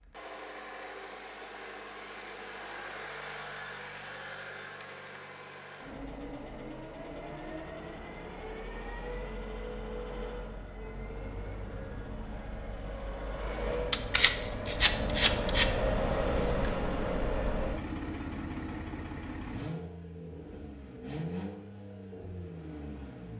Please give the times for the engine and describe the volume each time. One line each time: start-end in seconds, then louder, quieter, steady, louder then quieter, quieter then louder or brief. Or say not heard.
0.0-23.3 louder then quieter.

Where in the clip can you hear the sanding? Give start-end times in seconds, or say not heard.
13.9-16.7.